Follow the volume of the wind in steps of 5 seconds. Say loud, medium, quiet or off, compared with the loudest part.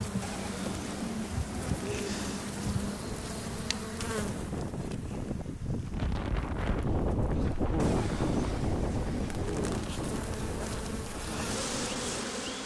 medium, loud, medium.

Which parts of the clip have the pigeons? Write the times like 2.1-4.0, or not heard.
0.2-2.8, 7.8-9.7.